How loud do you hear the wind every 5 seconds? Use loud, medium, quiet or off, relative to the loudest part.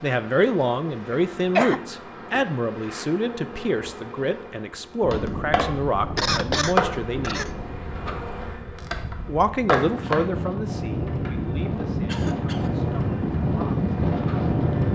off, medium, loud.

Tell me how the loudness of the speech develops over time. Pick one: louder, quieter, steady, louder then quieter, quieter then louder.
quieter.